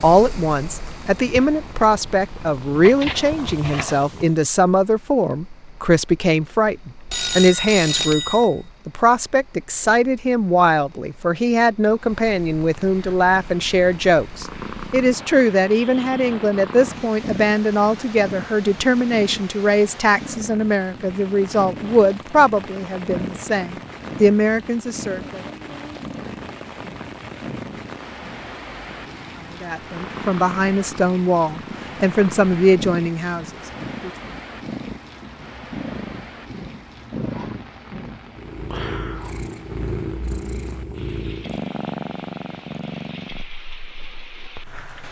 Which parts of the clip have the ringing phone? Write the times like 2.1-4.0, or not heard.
7.0-8.6.